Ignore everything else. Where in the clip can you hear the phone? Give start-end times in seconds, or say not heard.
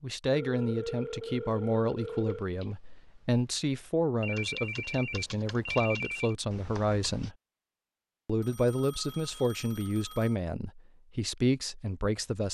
0.3-2.5, 4.2-6.3, 8.4-10.3.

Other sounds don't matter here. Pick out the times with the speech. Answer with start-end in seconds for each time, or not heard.
0.0-7.3, 8.2-12.4.